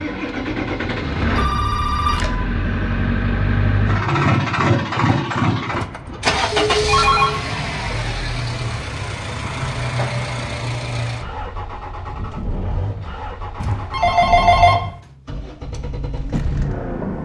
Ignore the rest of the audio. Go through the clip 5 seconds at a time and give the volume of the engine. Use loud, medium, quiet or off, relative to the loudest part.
loud, loud, medium, medium.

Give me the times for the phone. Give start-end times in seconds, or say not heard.
1.4-2.4, 6.7-7.4, 13.6-14.9.